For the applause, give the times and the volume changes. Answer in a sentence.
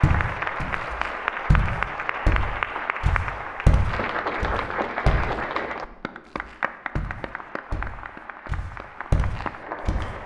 The applause can be heard from 0.0 to 10.2 s, getting quieter.